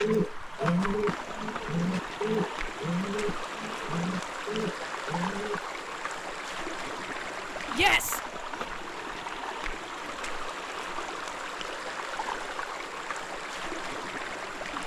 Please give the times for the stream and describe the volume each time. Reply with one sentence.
The stream can be heard from 0.0 to 14.8 s, at a steady volume.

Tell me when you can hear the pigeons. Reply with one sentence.
You can hear the pigeons from 0.0 to 5.6 s.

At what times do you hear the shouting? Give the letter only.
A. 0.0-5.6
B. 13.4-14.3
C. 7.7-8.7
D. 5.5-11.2
C.